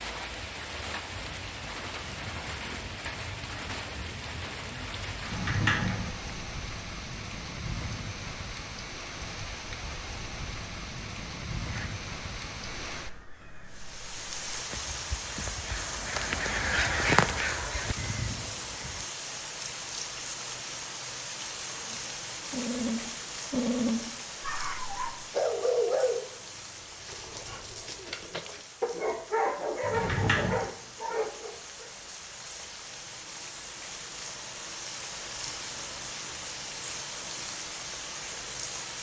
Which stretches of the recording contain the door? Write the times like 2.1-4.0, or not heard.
5.2-6.5, 29.8-30.8.